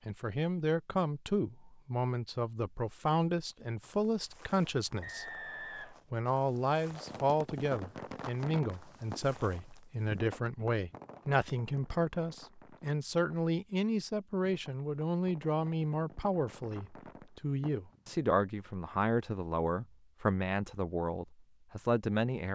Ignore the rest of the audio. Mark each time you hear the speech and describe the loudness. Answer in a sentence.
The speech can be heard from 0.1 to 22.4 s, at a steady volume.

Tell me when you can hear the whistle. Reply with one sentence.
The whistle can be heard from 5.0 to 6.0 s.